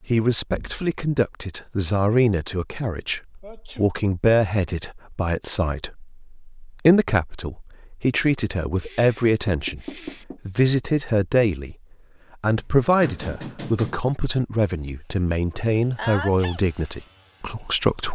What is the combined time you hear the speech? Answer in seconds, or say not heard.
17 s.